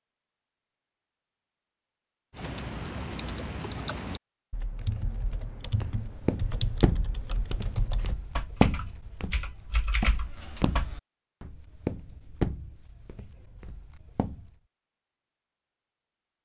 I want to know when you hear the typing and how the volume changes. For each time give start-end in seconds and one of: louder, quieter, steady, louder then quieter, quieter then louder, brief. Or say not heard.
2.3-10.9 steady.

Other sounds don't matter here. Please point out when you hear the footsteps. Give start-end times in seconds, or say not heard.
5.8-14.6.